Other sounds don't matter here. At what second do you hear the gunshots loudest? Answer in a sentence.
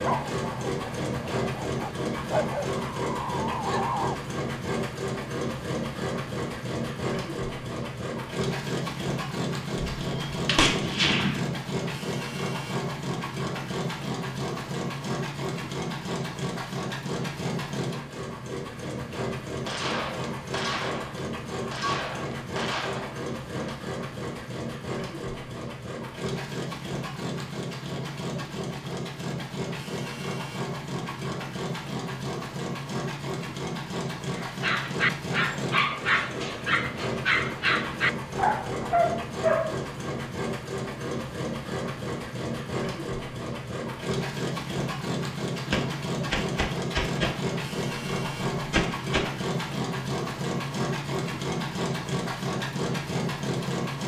The loudest moment of the gunshots is at 11 seconds.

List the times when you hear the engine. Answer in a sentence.
The engine can be heard from 0.0 to 54.0 s.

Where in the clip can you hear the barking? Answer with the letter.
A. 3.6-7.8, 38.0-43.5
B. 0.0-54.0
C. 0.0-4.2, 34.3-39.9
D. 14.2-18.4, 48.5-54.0
C.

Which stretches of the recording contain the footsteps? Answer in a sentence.
You can't hear the footsteps here.